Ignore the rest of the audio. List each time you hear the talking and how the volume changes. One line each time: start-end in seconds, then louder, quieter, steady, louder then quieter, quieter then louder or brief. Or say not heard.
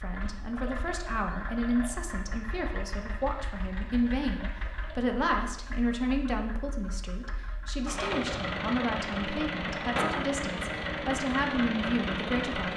0.0-12.7 steady.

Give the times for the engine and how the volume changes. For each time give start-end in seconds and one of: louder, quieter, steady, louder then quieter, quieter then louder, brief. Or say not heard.
0.0-12.7 quieter then louder.